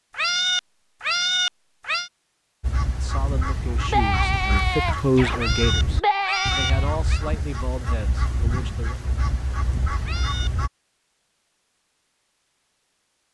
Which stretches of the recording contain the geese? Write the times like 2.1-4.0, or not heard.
2.6-10.7.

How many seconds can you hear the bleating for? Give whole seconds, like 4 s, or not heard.
3 s.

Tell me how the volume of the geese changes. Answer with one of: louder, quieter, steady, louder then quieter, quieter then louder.
steady.